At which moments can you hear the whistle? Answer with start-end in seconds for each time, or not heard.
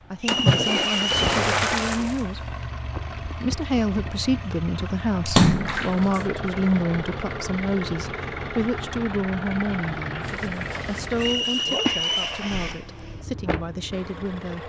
0.2-1.2, 11.2-12.2.